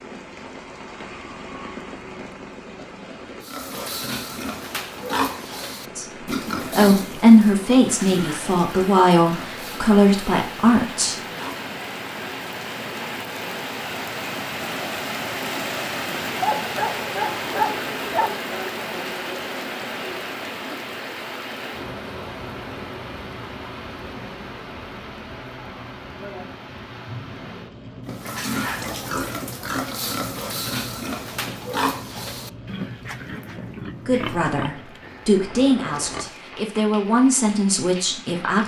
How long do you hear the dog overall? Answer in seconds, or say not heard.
2 s.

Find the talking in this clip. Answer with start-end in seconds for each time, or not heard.
6.7-11.3, 34.0-38.6.